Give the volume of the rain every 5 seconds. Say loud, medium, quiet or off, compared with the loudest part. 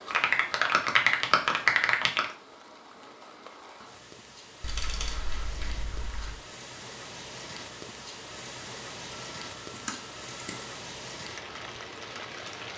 medium, loud, loud.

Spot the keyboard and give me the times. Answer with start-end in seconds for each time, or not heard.
0.1-2.2, 4.6-6.4, 9.1-10.7.